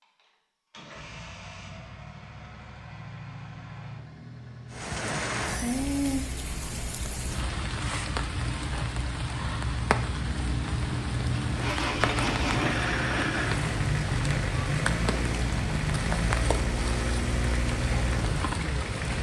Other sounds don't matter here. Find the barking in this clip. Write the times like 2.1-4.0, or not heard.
not heard.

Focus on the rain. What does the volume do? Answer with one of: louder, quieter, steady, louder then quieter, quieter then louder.
steady.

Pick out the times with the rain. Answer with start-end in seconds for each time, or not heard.
4.7-19.1.